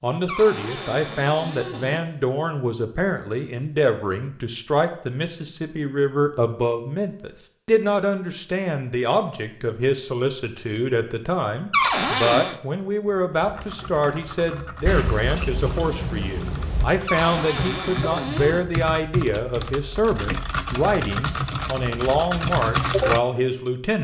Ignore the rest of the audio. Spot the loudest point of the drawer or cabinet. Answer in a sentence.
The volume of the drawer or cabinet peaks at 12 seconds.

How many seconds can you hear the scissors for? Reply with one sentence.
The scissors can be heard for 2 seconds in total.